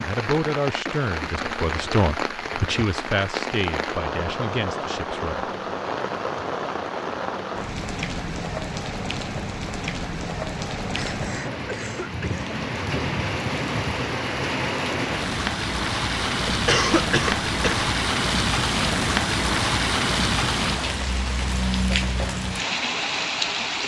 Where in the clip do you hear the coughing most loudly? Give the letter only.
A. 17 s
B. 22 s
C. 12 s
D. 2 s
A.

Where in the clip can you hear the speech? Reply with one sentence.
You can hear the speech from 0.0 to 5.5 s.